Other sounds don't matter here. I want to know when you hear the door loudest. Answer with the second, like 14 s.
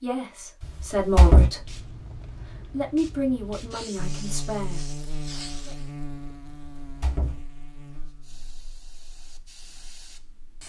1 s.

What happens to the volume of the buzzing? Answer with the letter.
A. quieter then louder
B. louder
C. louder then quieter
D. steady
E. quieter
E.